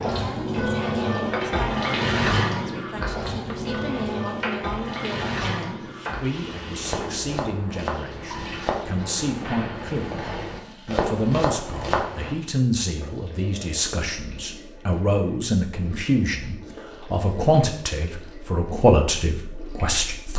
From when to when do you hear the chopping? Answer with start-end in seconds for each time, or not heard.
3.3-12.3.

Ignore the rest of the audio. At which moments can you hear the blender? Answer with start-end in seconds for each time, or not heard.
not heard.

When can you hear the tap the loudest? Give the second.
2 s.